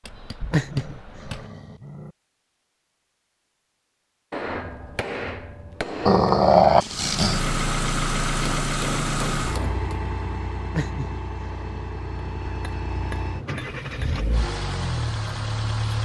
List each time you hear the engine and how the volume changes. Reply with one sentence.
You can hear the engine from 6.8 to 16.0 s, getting quieter then louder.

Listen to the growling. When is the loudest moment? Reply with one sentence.
The volume of the growling peaks at 7 seconds.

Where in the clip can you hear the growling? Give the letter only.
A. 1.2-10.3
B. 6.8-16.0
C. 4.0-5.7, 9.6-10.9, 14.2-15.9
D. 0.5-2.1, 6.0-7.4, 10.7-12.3
D.